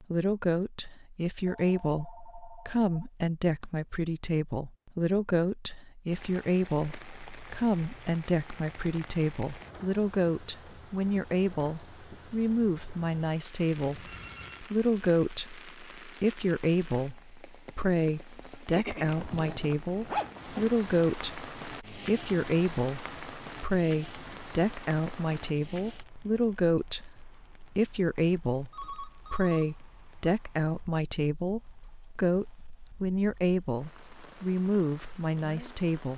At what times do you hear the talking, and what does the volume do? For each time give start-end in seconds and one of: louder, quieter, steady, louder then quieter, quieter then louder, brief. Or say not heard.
0.0-36.1 steady.